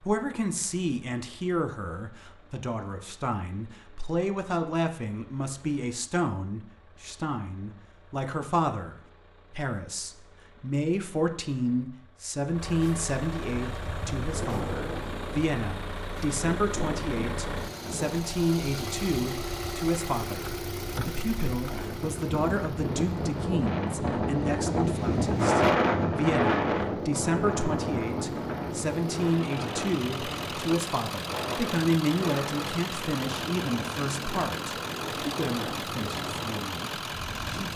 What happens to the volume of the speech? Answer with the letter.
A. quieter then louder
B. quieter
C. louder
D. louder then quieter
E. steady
E.